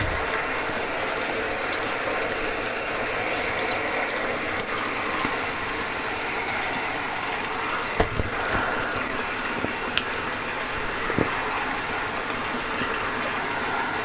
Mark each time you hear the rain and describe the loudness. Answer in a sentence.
The rain can be heard from 0.0 to 14.0 s, at a steady volume.